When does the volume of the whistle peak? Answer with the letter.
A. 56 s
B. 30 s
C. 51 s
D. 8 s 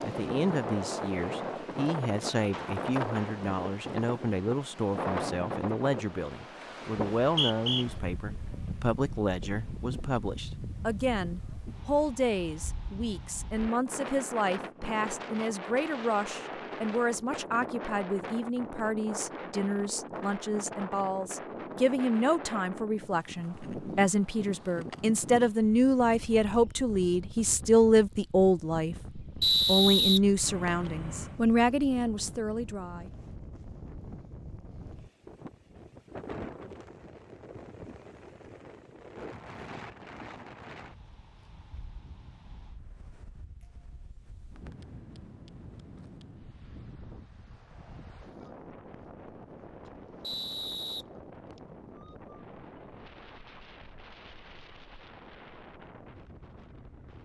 B.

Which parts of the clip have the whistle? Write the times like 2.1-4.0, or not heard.
7.2-7.8, 29.4-30.9, 50.2-51.5.